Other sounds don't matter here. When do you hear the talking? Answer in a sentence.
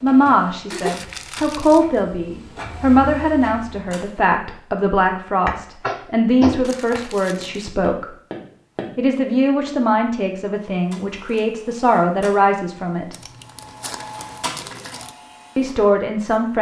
The talking can be heard from 0.0 to 8.1 s, from 8.9 to 13.2 s and from 15.6 to 16.5 s.